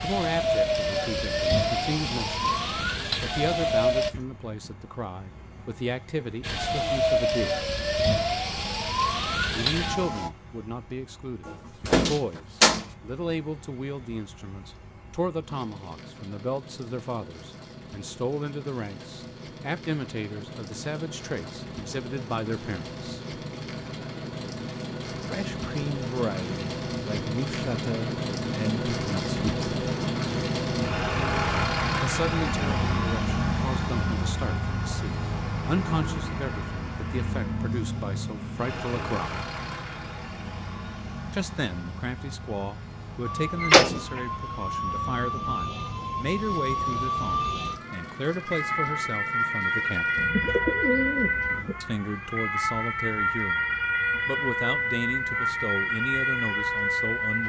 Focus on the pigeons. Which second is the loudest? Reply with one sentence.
The volume of the pigeons peaks at 51 seconds.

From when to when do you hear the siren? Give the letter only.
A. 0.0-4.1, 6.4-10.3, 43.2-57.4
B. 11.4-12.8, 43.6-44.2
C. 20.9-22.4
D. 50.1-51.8
A.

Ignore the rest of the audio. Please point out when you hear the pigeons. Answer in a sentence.
The pigeons can be heard from 50.1 to 51.8 s.